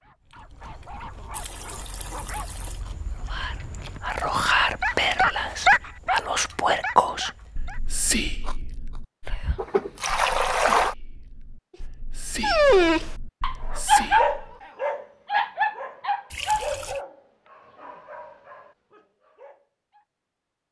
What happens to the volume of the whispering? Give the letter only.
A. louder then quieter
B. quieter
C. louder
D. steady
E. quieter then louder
B.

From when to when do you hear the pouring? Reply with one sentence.
You can hear the pouring from 1.3 to 2.8 s, from 9.6 to 10.9 s and from 16.3 to 17.0 s.